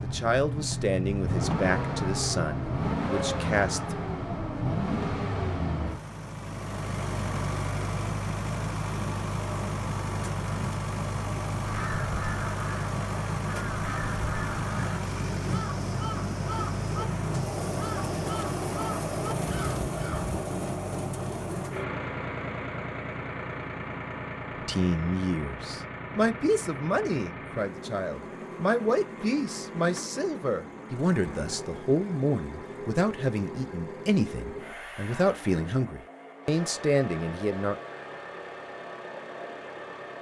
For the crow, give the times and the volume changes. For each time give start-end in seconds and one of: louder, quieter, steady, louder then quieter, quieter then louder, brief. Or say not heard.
11.7-20.4 steady.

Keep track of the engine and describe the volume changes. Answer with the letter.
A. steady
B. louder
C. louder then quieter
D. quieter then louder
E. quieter
E.